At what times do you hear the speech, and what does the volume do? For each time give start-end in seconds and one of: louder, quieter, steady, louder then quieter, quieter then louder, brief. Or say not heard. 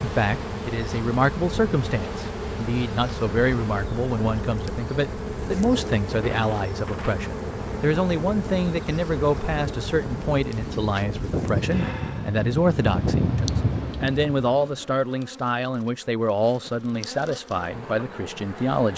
0.0-18.9 steady.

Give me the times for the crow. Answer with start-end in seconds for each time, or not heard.
not heard.